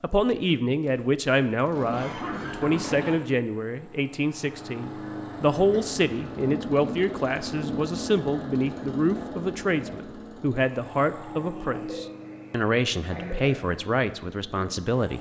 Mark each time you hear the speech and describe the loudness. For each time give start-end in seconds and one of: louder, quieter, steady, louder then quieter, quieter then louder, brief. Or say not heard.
0.0-15.1 steady.